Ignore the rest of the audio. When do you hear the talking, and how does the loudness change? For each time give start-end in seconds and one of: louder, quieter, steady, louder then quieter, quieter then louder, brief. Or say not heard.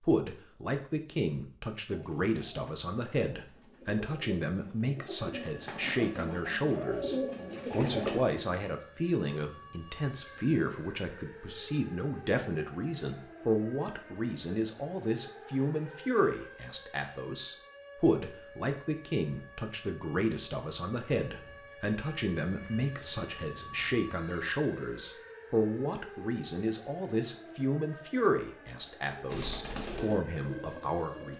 0.0-31.3 steady.